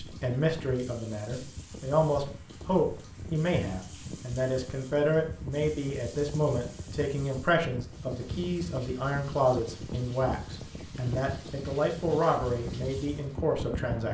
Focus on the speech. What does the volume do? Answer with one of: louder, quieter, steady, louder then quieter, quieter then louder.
steady.